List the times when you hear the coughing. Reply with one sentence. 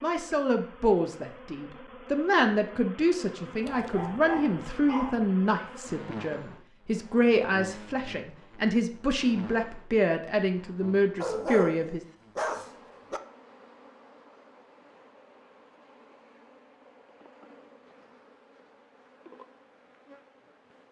The coughing can't be heard in this clip.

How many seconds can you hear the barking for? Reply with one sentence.
You can hear the barking for 4 seconds altogether.